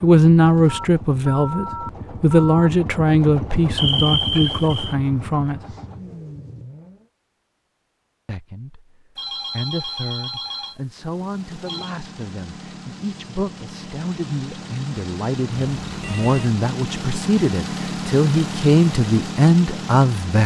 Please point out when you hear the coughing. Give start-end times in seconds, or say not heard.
3.8-5.0.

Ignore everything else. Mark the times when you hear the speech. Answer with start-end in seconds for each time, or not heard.
0.0-5.6, 8.2-8.8, 9.5-20.4.